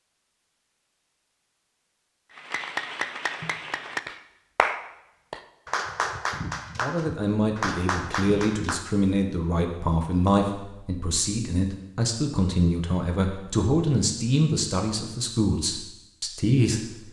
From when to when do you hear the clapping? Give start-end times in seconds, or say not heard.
2.3-8.9.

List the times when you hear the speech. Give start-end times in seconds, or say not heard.
6.8-16.8.